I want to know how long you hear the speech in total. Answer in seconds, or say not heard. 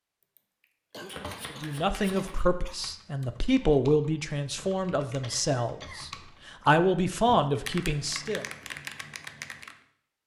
7 s.